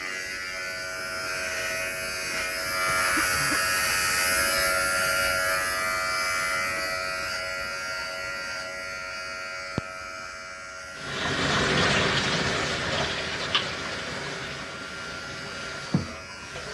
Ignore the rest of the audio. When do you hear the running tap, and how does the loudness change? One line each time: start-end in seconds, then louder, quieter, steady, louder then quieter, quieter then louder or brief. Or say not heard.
11.0-16.6 quieter.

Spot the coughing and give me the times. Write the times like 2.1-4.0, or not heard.
2.9-3.6.